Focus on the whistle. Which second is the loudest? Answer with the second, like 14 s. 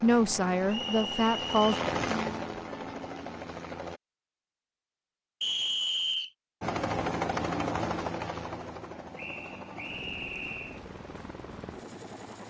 6 s.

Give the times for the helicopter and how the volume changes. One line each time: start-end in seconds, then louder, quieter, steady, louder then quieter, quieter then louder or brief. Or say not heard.
0.0-4.0 louder then quieter
6.6-12.4 quieter.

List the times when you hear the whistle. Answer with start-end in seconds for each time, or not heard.
0.7-1.6, 5.4-6.3, 9.2-10.8.